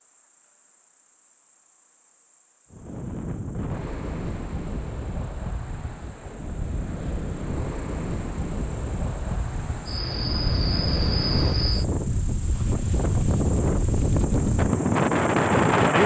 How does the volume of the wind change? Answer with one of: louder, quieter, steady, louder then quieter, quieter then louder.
louder.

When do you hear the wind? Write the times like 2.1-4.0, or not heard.
2.7-16.0.